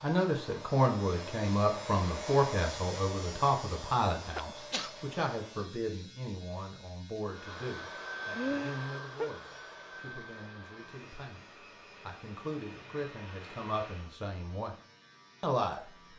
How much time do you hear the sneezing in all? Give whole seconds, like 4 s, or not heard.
2 s.